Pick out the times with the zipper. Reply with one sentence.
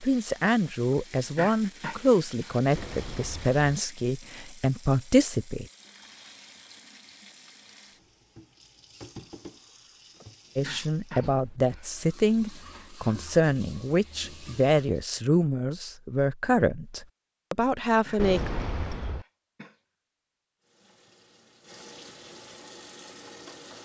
You can't hear the zipper here.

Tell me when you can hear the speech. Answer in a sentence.
The speech can be heard from 0.0 to 5.7 s and from 10.6 to 18.5 s.